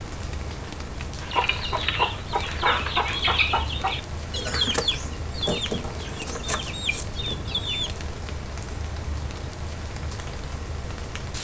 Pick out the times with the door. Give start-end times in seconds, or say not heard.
not heard.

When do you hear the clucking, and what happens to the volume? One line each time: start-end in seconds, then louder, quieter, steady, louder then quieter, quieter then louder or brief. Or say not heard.
1.2-7.9 quieter.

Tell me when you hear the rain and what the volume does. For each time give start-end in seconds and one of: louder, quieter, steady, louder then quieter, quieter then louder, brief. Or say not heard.
0.0-11.3 steady.